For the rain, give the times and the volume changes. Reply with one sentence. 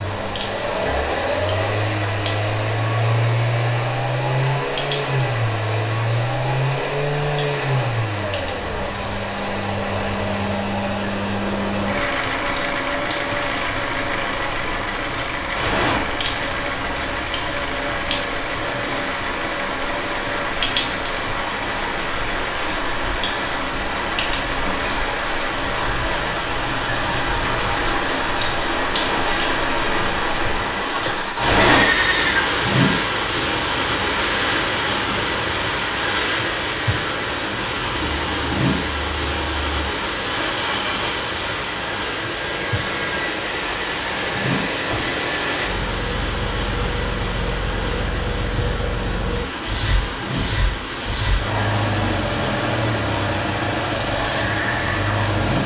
The rain can be heard from 0.0 to 55.6 s, getting louder then quieter.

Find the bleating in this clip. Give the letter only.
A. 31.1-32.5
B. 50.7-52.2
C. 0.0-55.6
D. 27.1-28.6
A.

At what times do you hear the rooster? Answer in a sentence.
The rooster can't be heard in this clip.